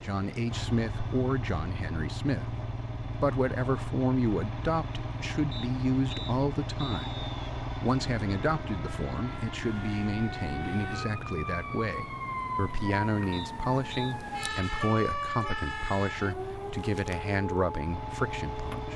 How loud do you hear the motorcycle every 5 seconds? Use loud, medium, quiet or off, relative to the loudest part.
loud, loud, medium, medium.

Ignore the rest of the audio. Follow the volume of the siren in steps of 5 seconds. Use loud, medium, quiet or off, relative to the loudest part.
off, medium, loud, loud.